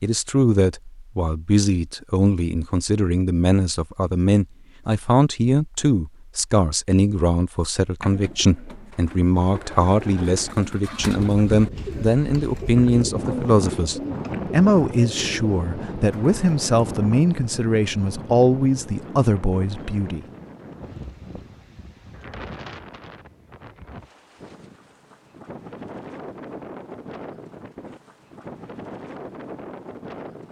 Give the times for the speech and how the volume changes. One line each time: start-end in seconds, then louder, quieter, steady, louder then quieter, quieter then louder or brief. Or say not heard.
0.0-20.2 steady.